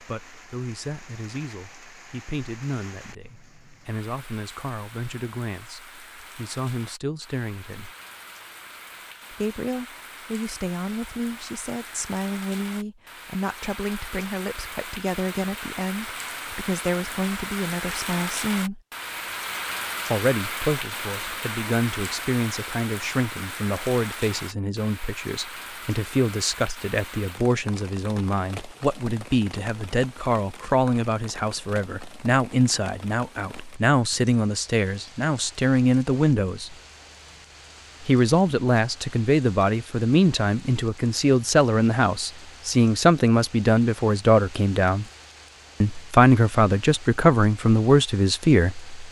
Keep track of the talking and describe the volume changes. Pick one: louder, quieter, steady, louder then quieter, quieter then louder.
louder.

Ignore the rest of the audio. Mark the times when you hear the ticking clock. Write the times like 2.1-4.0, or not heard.
not heard.